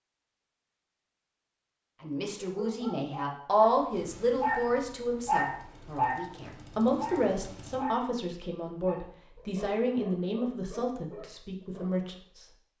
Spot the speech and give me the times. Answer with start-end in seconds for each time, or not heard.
2.0-12.4.